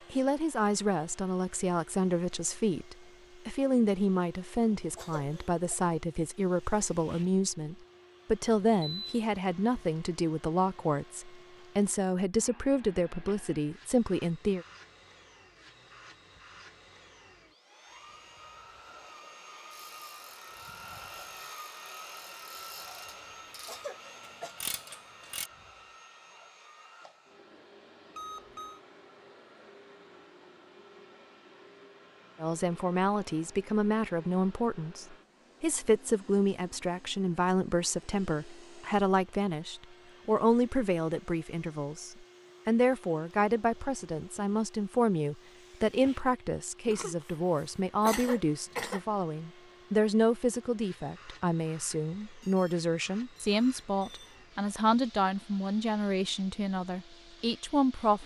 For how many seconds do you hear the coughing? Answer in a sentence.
The coughing can be heard for 3 seconds in total.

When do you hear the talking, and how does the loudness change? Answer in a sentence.
The talking can be heard from 0.1 to 14.7 s, at a steady volume; and from 32.4 to 58.2 s, at a steady volume.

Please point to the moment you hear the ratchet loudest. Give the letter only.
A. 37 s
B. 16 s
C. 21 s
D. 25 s
D.